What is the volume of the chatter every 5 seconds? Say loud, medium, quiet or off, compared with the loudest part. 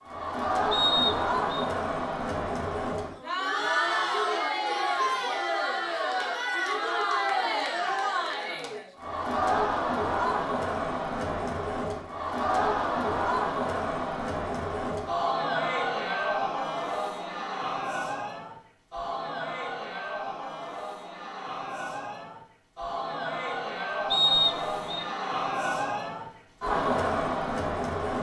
loud, loud, loud, loud, medium, loud.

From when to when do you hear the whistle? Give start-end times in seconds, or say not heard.
0.7-1.5, 24.1-25.1.